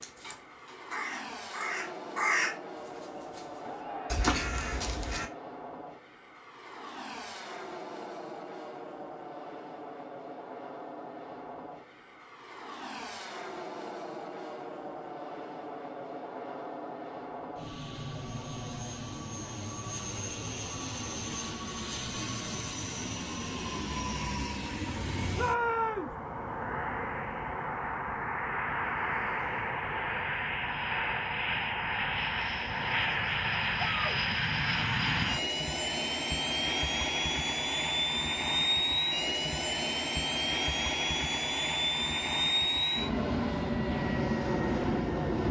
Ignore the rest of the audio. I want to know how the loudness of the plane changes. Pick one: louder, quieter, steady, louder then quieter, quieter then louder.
louder.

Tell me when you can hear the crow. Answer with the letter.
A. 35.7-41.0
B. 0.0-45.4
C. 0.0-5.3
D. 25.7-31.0
C.